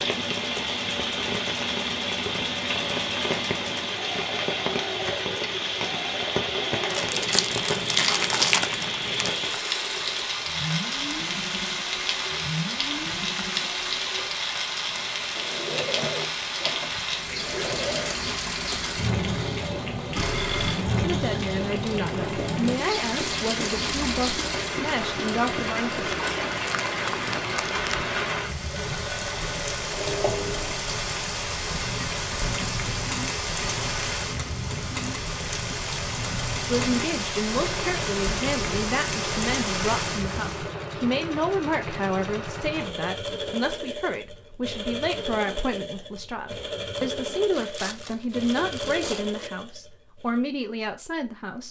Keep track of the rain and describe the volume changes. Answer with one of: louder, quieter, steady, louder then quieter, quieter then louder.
steady.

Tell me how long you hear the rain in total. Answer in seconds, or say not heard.
41 s.